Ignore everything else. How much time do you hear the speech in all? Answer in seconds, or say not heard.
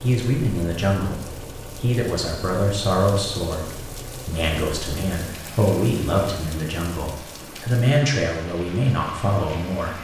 10 s.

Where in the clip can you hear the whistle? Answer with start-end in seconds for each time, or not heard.
not heard.